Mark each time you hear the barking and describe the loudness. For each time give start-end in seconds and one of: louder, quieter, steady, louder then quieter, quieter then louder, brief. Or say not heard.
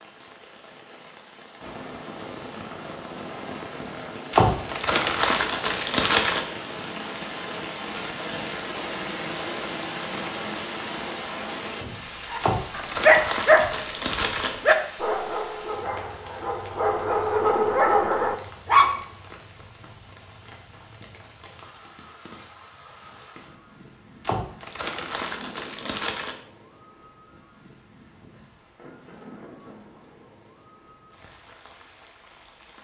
12.3-18.9 quieter then louder.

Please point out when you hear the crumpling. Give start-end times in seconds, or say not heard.
4.3-6.4, 12.4-14.6, 24.2-26.4.